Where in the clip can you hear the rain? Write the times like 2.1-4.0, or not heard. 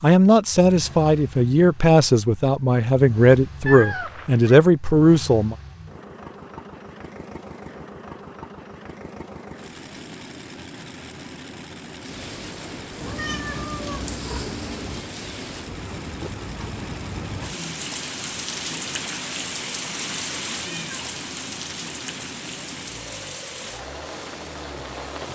11.9-25.3.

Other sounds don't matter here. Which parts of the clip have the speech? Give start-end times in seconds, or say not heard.
0.0-5.5.